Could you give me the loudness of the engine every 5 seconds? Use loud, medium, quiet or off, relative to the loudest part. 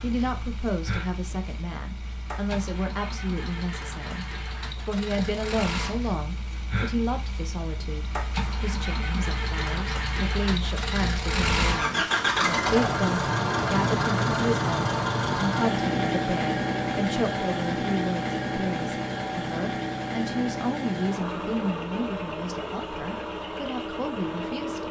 quiet, medium, loud, loud, medium.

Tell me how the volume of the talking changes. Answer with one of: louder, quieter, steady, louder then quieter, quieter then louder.
steady.